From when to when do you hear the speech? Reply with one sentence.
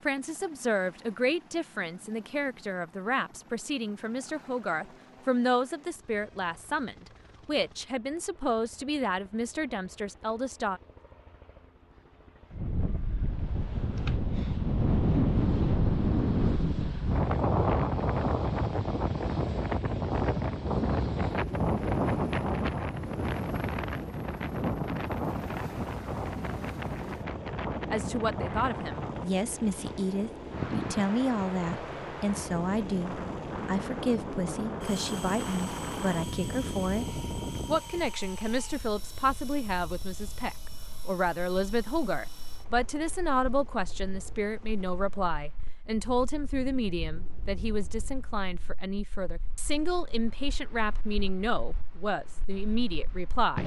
The speech can be heard from 0.1 to 10.8 s and from 27.9 to 53.6 s.